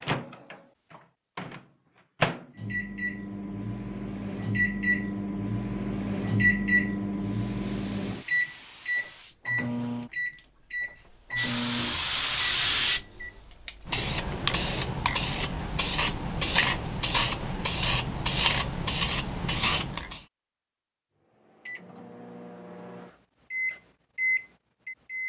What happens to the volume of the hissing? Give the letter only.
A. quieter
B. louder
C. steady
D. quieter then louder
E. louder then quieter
B.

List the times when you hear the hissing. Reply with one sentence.
The hissing can be heard from 7.1 to 20.2 s.